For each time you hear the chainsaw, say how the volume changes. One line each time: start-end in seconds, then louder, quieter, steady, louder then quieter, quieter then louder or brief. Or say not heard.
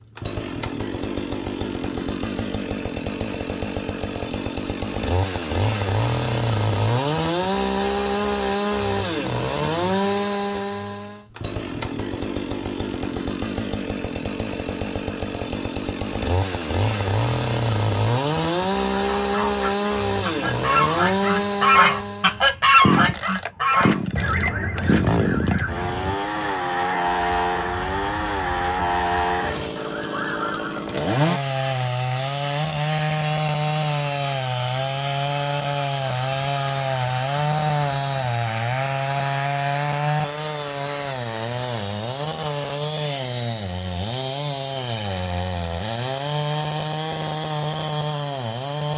0.1-48.9 steady.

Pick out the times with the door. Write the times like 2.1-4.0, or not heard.
not heard.